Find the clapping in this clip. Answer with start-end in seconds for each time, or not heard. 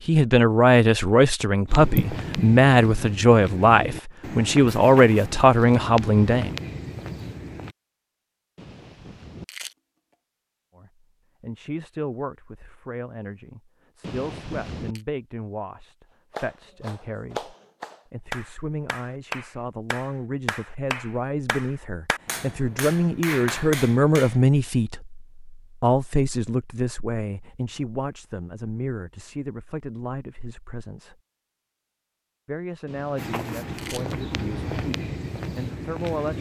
16.3-24.4.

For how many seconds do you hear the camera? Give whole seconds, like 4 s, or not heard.
3 s.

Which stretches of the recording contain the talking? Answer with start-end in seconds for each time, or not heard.
0.1-6.5, 10.8-31.2, 32.5-36.3.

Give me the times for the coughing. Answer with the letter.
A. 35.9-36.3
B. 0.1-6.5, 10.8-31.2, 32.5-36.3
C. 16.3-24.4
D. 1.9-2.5
D.